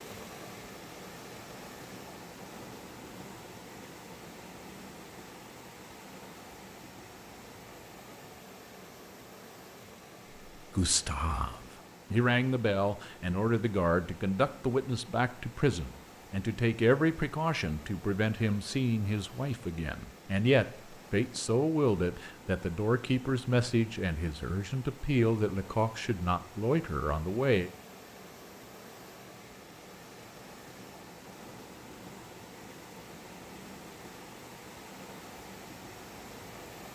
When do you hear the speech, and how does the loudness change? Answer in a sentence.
The speech can be heard from 10.6 to 27.7 s, at a steady volume.